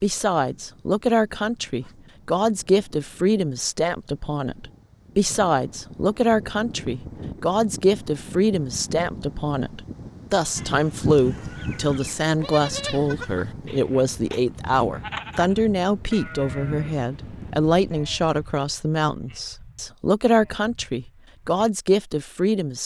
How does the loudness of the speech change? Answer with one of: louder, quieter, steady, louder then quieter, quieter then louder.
steady.